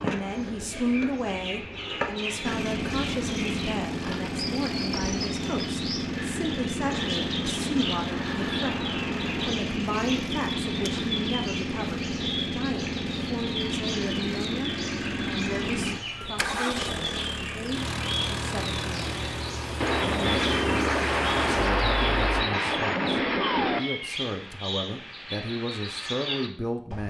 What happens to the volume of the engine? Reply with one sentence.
The loudness of the engine stays about the same.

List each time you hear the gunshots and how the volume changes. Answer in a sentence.
You can hear the gunshots briefly from 6.8 to 9.6 s; and from 19.8 to 23.8 s, at a steady volume.